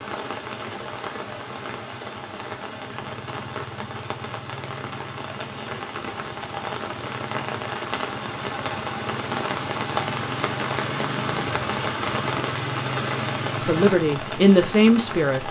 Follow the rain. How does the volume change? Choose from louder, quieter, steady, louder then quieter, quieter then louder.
louder.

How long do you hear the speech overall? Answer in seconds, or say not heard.
2 s.